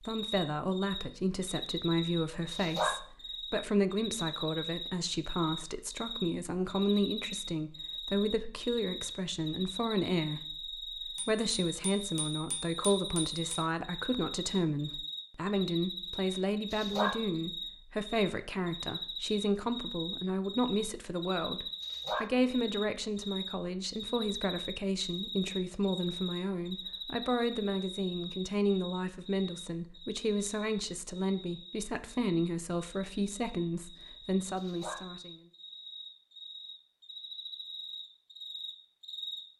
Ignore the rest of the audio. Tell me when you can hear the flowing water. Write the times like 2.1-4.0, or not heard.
not heard.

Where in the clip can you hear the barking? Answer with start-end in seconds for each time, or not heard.
2.5-3.0, 16.7-17.1, 21.8-22.3, 34.5-35.0.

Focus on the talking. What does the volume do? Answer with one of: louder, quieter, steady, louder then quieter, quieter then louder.
steady.